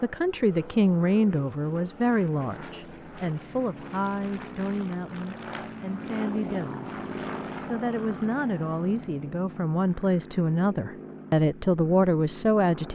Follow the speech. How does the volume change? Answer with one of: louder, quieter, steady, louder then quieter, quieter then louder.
quieter then louder.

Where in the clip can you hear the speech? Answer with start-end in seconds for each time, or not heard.
0.0-12.9.